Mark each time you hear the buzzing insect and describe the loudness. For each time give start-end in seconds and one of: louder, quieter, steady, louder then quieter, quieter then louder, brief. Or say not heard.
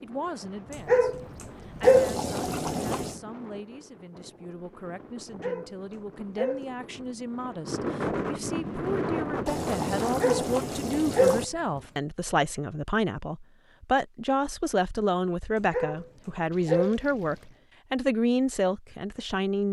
not heard.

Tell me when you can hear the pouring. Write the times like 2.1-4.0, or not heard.
1.8-3.2, 9.4-11.4, 16.5-17.6.